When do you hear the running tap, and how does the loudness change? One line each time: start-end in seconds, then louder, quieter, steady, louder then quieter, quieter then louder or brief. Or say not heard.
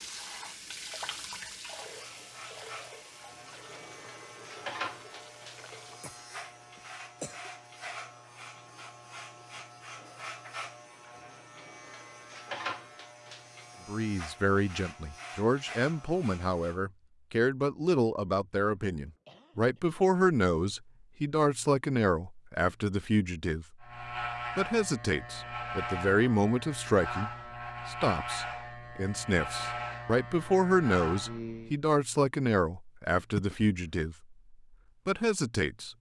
0.0-6.2 quieter.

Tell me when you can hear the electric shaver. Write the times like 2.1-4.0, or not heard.
1.8-16.8, 23.8-31.8.